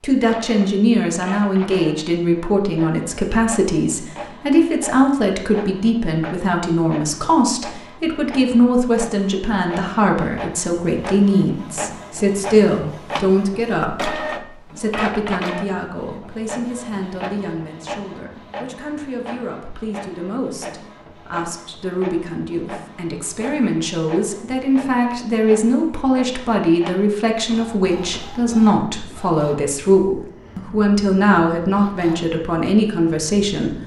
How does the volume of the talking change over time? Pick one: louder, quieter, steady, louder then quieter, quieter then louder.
quieter then louder.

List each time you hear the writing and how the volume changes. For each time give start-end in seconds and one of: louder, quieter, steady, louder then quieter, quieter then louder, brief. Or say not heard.
not heard.